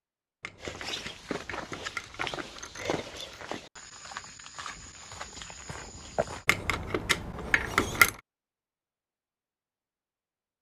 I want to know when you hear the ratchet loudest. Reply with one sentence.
The loudest moment of the ratchet is at 8 seconds.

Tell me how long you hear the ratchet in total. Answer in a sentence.
The ratchet can be heard for 5 seconds in total.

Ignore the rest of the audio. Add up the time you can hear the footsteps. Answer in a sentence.
The footsteps can be heard for 6 seconds in total.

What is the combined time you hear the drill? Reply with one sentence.
The drill can't be heard in this clip.